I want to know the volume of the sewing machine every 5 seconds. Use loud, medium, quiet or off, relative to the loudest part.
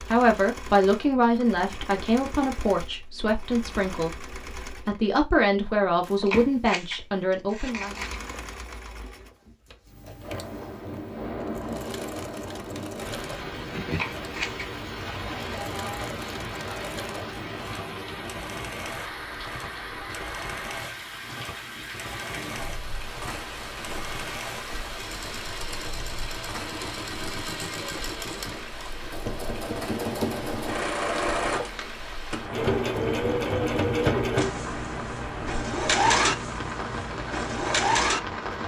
quiet, quiet, quiet, quiet, quiet, medium, loud, loud.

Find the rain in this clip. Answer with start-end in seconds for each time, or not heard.
10.2-38.6.